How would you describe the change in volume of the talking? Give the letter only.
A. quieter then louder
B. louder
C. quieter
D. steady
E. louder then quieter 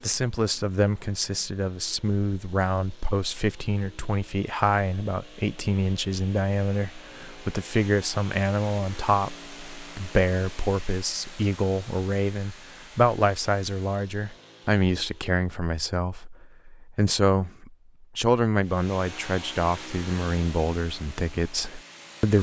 D.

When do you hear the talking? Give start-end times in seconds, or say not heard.
0.0-22.3.